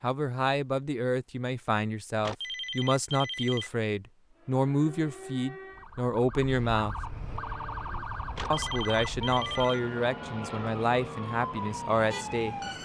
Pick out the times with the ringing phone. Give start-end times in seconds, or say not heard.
2.2-3.7, 8.3-9.8.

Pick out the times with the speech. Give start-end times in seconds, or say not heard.
0.0-7.0, 8.5-12.6.